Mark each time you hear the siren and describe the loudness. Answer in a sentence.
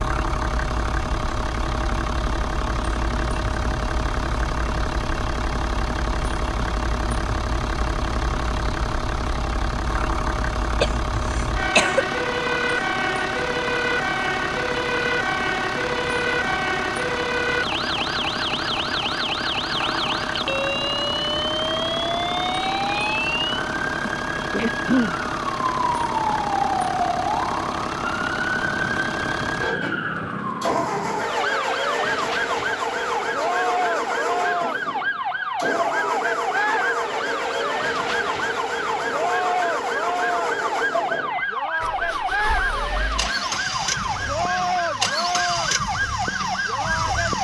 The siren can be heard from 0.0 to 47.3 s, getting louder.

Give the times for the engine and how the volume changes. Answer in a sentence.
You can hear the engine from 0.0 to 47.3 s, at a steady volume.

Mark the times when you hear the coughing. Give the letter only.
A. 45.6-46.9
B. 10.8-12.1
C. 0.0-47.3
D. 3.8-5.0
B.